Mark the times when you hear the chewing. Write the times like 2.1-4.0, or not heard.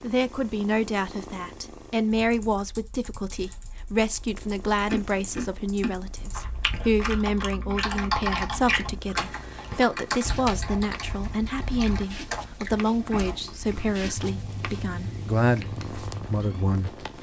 4.8-16.8.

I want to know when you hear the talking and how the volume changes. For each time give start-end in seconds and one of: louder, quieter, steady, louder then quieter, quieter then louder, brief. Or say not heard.
0.0-17.1 steady.